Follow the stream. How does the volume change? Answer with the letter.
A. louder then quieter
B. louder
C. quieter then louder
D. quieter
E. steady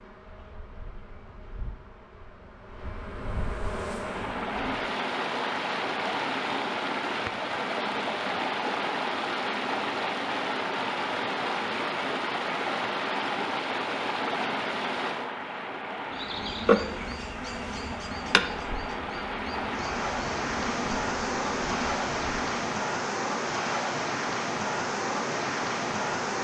E.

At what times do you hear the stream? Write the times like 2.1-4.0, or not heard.
4.0-26.4.